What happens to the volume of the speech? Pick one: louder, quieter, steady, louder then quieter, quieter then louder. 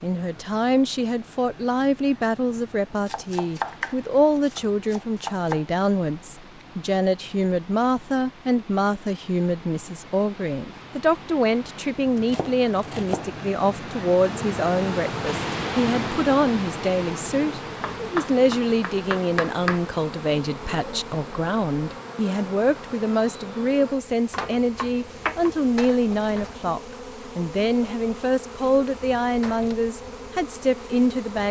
steady.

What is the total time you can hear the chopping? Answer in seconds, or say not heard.
7 s.